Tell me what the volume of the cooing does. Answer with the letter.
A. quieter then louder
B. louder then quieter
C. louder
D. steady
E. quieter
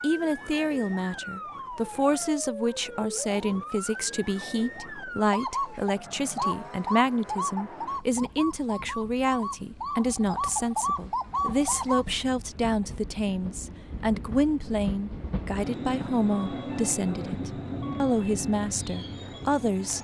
A.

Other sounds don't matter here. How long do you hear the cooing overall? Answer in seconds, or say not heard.
7 s.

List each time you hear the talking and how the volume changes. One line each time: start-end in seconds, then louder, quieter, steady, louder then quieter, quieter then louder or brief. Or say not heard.
0.0-19.9 steady.